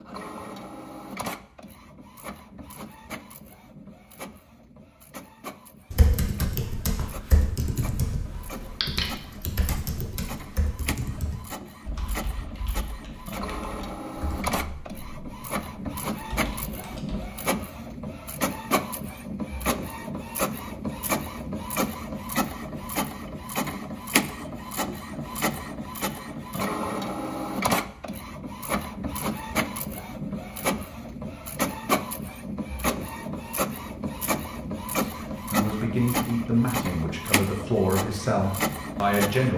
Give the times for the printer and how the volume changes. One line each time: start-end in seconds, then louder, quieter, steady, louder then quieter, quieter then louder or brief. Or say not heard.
0.0-39.5 louder.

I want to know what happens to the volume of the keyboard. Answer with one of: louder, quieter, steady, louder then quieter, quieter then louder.
quieter.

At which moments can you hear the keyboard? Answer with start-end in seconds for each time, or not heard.
5.9-17.4.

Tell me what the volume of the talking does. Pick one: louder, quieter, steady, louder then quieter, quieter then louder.
steady.